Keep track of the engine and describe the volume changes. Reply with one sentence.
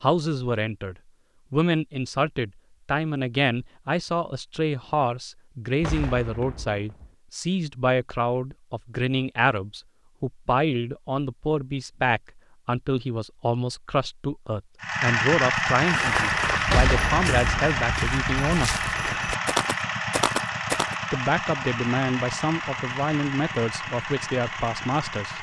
The volume of the engine goes down.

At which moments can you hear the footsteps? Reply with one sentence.
You can hear the footsteps from 15.8 to 20.9 s.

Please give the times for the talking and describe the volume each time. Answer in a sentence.
The talking can be heard from 0.0 to 18.8 s, at a steady volume; and from 21.1 to 25.3 s, at a steady volume.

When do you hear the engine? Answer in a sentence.
You can hear the engine from 14.8 to 25.3 s.